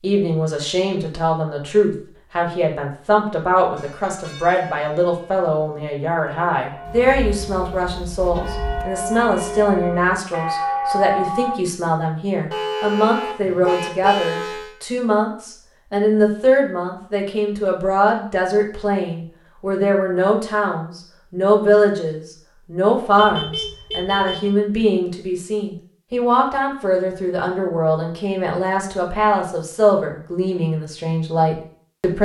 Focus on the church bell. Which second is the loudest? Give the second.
11 s.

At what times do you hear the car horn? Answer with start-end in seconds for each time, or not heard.
6.8-8.8, 12.5-14.8, 23.1-24.6.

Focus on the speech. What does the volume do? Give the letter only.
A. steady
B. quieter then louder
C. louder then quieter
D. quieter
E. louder
A.